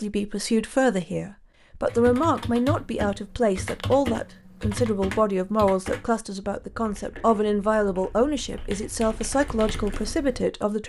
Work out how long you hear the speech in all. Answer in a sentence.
The speech can be heard for 11 seconds in total.